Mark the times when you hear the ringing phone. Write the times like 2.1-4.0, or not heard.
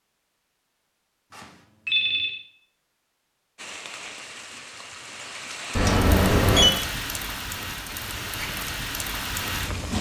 1.3-2.4, 5.8-6.7.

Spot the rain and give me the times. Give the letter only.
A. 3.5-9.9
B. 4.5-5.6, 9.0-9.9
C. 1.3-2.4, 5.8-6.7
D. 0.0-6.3
A.